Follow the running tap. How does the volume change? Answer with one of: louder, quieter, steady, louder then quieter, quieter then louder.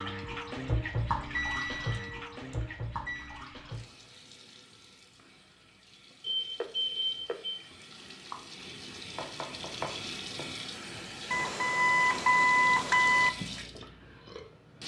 quieter then louder.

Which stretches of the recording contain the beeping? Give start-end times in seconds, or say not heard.
1.3-3.4, 6.2-7.7, 11.3-13.3.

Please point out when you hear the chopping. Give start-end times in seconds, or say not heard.
9.2-10.5.